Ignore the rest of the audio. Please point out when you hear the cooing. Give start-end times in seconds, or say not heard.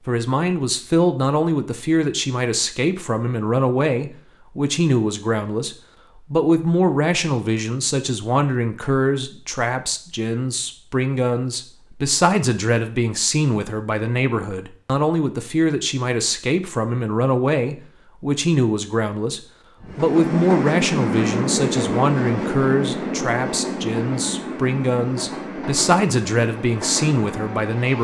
not heard.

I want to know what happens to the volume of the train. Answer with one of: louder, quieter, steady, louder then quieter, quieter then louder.
quieter.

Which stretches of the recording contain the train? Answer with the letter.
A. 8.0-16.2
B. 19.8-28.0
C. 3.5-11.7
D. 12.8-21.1
B.